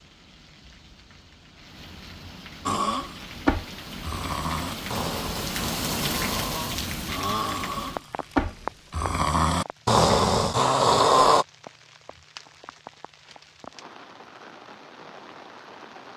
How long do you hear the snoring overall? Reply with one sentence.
You can hear the snoring for 9 seconds altogether.